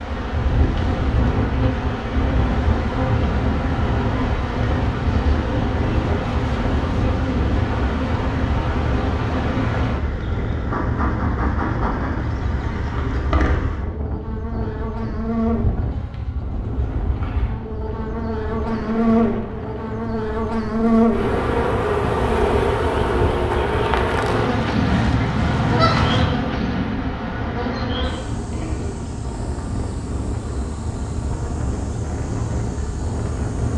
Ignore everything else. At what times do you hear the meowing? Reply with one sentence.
You can't hear the meowing here.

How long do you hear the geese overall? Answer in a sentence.
The geese can be heard for 2 seconds in total.